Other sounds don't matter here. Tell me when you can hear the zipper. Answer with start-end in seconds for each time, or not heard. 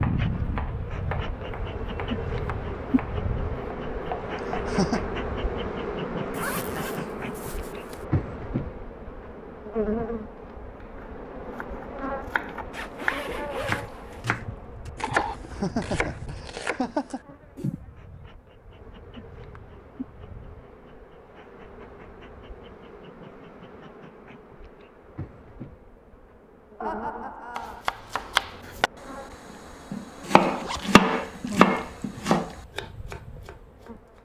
6.3-8.1, 12.7-14.3, 30.5-31.6.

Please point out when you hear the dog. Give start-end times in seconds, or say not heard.
not heard.